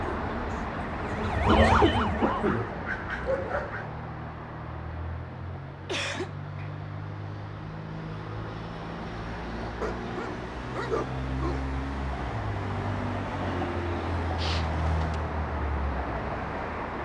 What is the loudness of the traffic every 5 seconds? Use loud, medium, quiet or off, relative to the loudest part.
loud, medium, loud, loud.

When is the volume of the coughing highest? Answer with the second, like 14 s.
2 s.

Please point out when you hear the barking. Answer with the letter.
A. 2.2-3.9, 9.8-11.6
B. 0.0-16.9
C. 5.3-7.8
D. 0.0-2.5
A.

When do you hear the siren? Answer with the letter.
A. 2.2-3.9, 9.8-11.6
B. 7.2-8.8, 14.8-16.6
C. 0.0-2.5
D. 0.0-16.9
C.